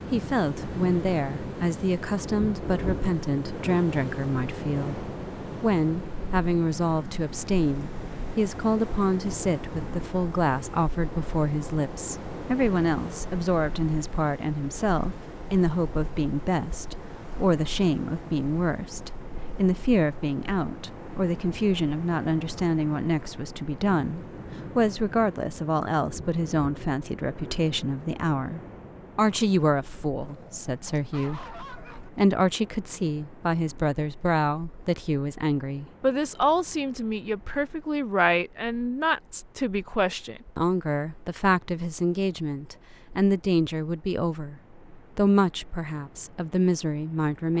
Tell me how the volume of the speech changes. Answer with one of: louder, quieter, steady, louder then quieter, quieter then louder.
steady.